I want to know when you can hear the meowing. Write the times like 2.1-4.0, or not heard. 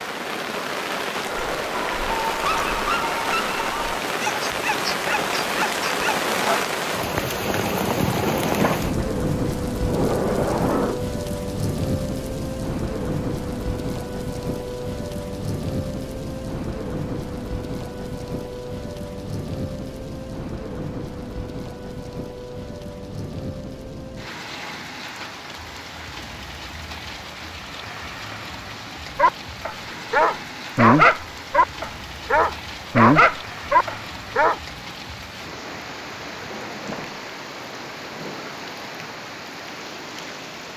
not heard.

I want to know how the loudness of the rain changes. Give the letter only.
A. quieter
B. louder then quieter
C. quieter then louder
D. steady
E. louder
A.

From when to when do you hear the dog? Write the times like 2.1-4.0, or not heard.
1.2-6.7, 29.1-34.5.